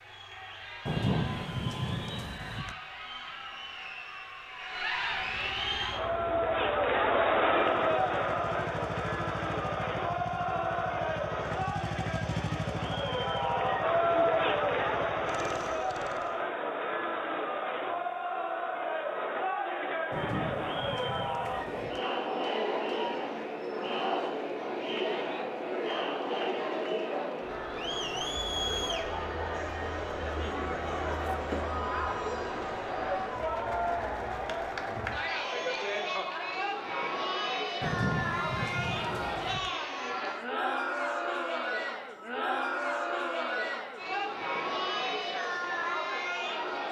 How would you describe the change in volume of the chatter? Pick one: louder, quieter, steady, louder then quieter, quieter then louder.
steady.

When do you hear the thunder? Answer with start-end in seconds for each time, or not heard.
0.8-2.8, 20.1-22.0, 37.8-39.7.